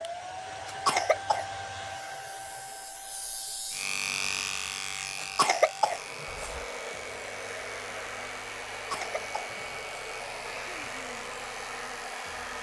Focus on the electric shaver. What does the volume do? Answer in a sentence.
The loudness of the electric shaver goes up, then down.